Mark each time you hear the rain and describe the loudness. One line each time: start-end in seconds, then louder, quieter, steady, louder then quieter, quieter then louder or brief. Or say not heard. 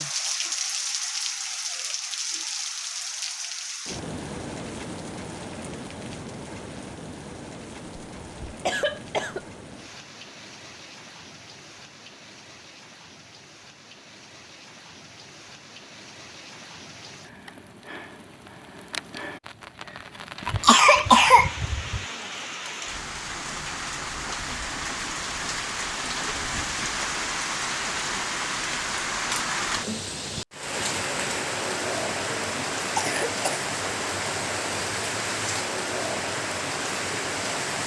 0.0-37.8 quieter then louder.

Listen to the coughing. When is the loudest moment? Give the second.
21 s.